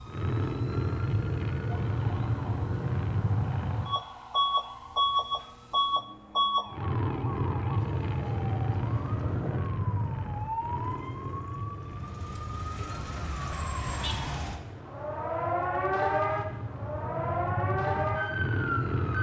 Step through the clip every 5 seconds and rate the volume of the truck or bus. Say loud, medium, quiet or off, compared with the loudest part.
loud, loud, medium, medium.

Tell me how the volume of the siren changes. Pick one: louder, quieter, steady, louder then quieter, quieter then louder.
louder.